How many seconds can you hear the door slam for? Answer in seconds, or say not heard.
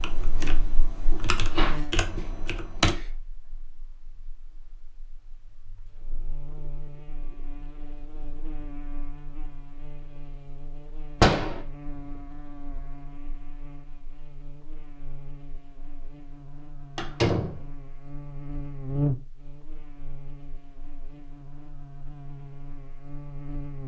2 s.